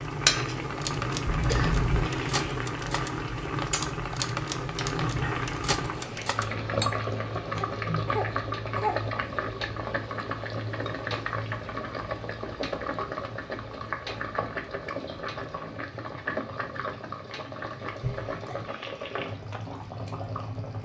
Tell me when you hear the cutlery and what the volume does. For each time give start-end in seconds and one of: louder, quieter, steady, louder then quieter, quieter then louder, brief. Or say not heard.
0.6-6.9 steady.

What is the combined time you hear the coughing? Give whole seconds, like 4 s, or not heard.
3 s.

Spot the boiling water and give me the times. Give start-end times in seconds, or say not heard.
0.0-20.8.